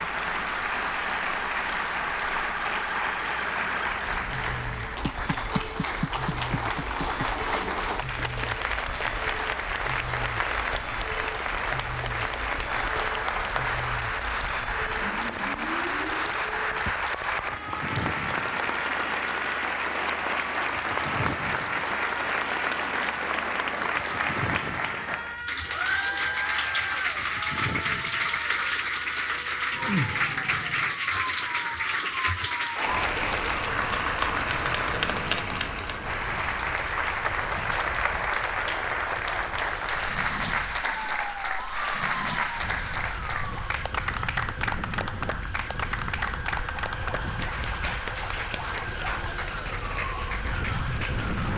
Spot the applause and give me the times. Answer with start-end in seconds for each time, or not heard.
0.0-51.5.